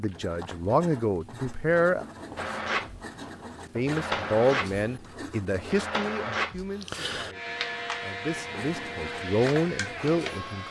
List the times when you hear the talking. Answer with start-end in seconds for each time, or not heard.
0.0-2.0, 3.8-10.6.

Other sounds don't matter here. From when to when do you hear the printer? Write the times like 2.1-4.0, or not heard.
2.4-10.6.